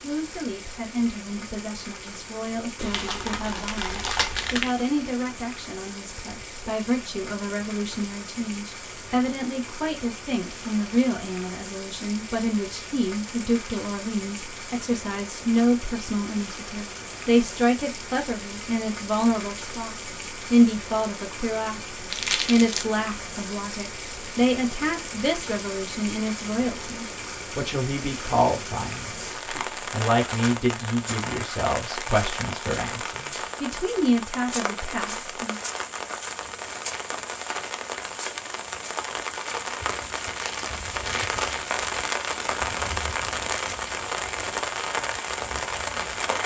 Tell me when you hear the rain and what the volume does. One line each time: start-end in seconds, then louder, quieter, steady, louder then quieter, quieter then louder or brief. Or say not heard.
0.0-46.4 louder.